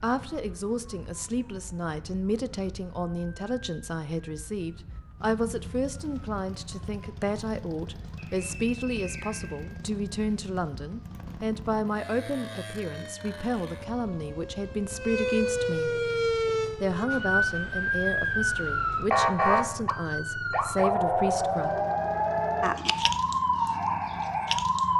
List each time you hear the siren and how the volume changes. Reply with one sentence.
The siren can be heard from 0.0 to 24.9 s, getting louder.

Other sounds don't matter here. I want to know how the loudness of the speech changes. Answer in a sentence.
The loudness of the speech stays about the same.